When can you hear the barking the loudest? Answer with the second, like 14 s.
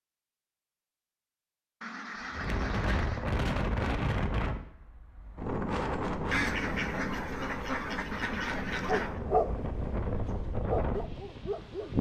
9 s.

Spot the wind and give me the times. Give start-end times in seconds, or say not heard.
2.3-11.9.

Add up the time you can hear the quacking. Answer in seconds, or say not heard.
4 s.